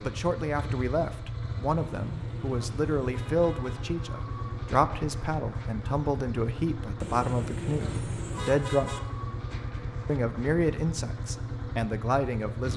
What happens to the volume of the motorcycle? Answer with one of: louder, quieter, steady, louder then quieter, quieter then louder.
steady.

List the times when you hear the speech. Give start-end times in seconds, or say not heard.
0.0-8.9, 10.1-12.7.